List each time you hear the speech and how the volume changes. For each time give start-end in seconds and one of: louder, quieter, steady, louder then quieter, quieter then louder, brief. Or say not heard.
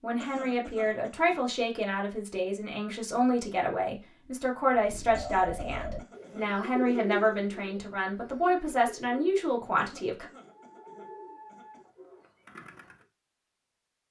0.0-10.3 steady.